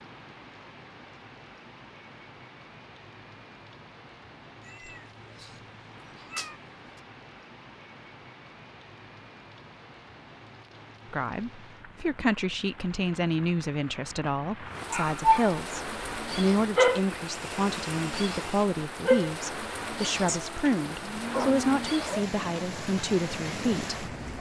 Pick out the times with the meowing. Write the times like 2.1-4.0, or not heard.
4.7-5.5, 6.2-7.0, 20.2-21.9.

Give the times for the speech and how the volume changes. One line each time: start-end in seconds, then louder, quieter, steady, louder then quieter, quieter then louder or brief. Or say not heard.
11.1-24.1 steady.